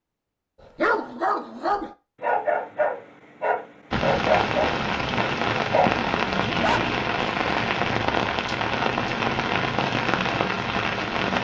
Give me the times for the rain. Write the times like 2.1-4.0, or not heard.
3.9-11.4.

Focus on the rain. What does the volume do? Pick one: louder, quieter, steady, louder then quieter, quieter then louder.
steady.